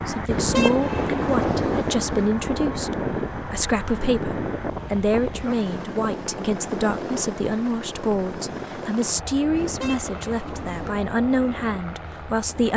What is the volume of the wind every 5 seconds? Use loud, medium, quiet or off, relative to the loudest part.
loud, medium, quiet.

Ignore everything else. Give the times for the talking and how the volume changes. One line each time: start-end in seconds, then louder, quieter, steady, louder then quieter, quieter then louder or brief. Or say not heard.
0.1-12.7 steady.